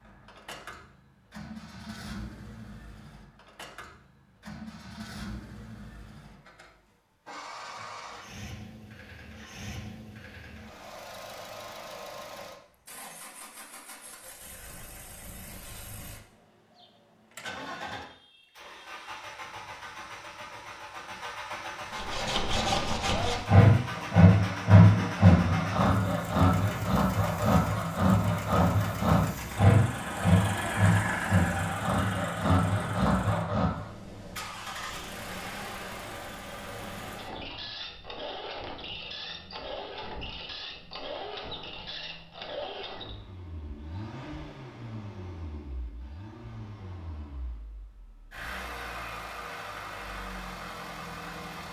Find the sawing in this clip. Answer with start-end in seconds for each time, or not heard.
21.9-33.8.